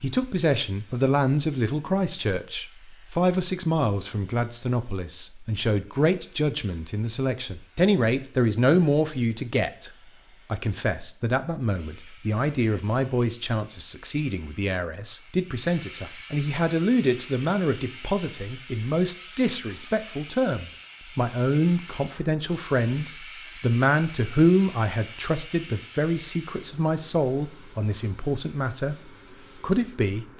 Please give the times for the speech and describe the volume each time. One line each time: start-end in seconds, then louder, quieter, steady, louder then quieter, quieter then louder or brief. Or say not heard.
0.0-30.3 steady.